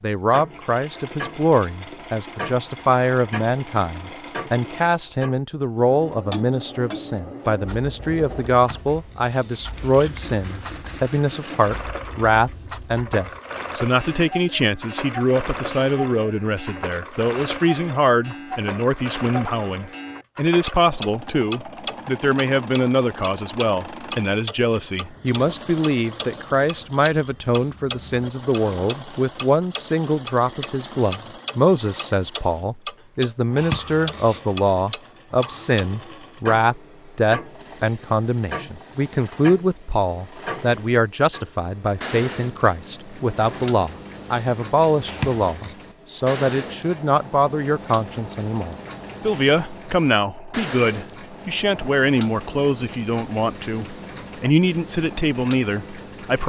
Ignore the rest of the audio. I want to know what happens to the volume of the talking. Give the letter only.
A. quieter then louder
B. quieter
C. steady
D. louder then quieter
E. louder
C.